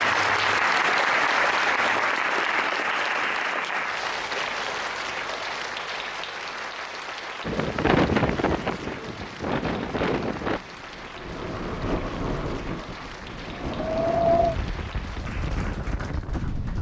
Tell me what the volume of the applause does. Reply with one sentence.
The loudness of the applause goes down.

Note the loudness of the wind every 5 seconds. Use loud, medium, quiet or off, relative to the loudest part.
off, loud, loud, medium.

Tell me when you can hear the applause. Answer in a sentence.
You can hear the applause from 0.0 to 16.7 s.